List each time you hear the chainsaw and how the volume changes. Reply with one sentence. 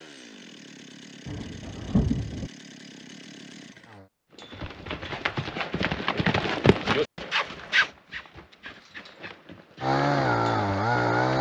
The chainsaw can be heard from 0.0 to 4.1 s, at a steady volume; and briefly from 9.8 to 11.3 s.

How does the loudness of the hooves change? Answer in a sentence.
The loudness of the hooves goes up, then down.